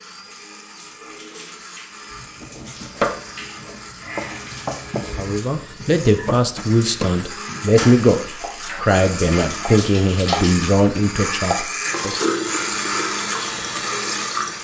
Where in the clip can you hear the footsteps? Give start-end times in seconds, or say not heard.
not heard.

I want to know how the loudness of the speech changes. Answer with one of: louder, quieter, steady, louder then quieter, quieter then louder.
steady.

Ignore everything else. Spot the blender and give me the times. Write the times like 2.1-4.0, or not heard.
0.0-14.5.